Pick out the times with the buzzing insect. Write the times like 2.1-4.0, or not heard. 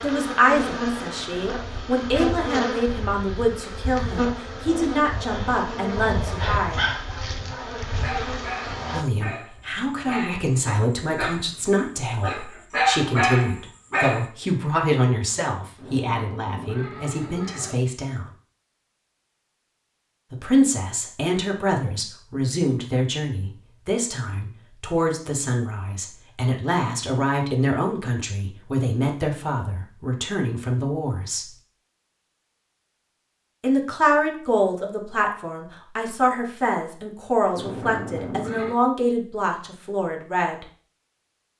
0.0-9.1.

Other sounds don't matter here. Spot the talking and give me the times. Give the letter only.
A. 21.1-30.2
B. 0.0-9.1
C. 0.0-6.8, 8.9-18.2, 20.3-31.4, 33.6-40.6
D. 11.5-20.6
C.